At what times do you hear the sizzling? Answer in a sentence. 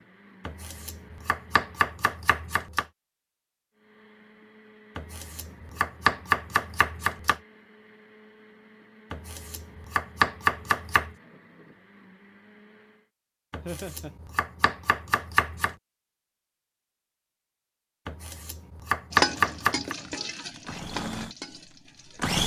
You can hear the sizzling from 19.1 to 22.4 s.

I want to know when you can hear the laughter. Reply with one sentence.
The laughter can be heard from 13.7 to 14.2 s.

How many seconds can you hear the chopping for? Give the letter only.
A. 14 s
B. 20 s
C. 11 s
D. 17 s
C.